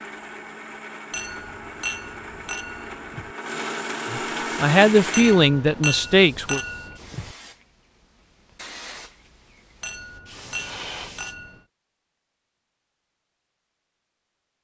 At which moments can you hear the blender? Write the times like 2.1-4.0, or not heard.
0.0-5.5.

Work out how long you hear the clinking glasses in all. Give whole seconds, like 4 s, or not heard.
6 s.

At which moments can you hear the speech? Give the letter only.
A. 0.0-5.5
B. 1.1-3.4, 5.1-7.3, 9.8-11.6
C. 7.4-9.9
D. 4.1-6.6
D.